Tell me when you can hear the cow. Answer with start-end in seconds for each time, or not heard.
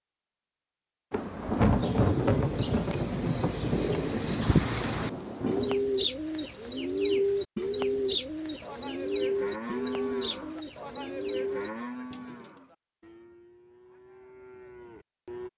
8.6-15.5.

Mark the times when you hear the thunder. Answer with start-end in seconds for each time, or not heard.
1.1-5.8.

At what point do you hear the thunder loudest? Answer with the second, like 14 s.
2 s.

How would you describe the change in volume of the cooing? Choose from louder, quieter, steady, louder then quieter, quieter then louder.
louder then quieter.